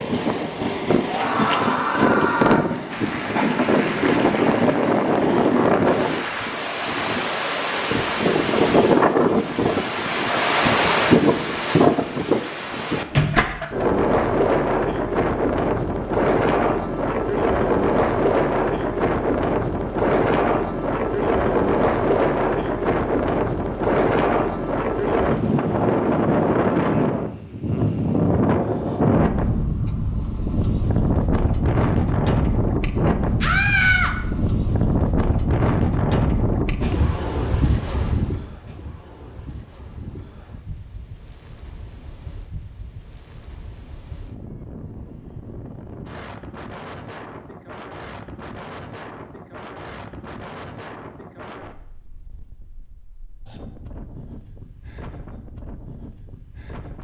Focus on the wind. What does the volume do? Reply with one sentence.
The loudness of the wind goes down.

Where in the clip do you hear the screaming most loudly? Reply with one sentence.
The loudest moment of the screaming is at 34 seconds.